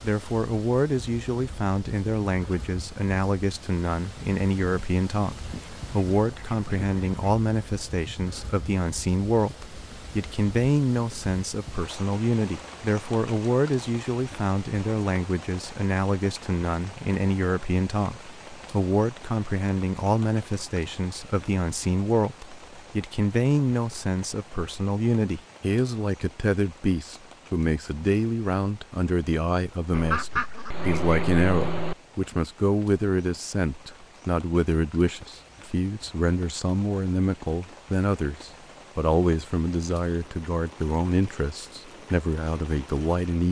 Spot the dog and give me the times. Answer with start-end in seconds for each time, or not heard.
not heard.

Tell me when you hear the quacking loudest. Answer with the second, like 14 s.
30 s.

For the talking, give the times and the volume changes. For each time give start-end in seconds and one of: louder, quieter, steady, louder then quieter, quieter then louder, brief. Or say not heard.
0.0-43.4 steady.